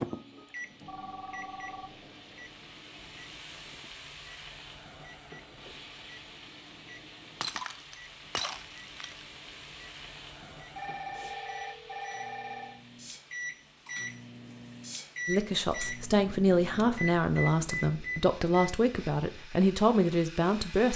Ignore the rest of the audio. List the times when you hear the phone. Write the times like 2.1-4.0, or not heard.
0.8-2.0, 10.8-12.8.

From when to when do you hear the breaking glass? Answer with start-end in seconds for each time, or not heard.
7.4-9.2.